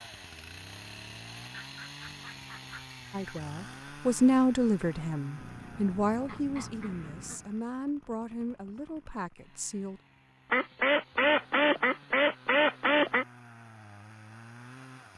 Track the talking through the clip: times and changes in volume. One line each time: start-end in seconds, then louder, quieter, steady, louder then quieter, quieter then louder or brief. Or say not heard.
3.1-10.0 quieter.